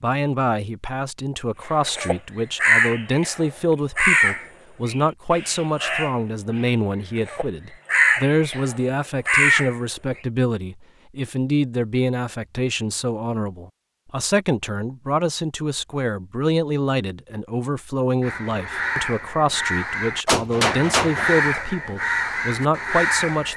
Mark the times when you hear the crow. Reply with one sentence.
The crow can be heard from 1.8 to 10.2 s and from 18.2 to 23.5 s.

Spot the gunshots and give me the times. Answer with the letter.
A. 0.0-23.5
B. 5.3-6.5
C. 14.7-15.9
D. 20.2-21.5
D.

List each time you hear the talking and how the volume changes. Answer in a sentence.
The talking can be heard from 0.0 to 23.5 s, at a steady volume.